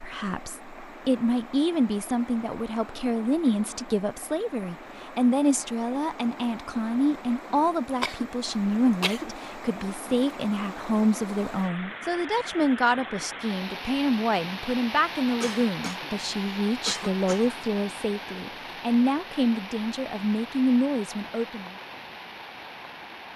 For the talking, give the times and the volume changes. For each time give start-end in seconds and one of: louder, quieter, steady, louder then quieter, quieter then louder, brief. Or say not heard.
0.0-21.8 steady.